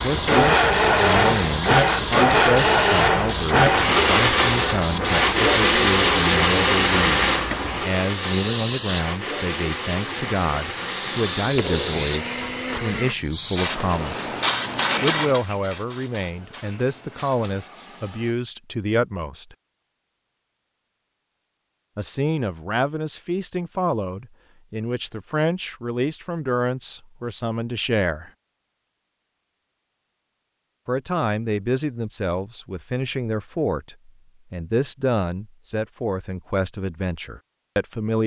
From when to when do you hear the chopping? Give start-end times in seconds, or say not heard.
not heard.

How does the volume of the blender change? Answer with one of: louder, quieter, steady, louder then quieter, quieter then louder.
quieter.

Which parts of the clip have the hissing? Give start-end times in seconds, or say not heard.
0.0-18.4.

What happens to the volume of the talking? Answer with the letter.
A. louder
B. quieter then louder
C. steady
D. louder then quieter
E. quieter
C.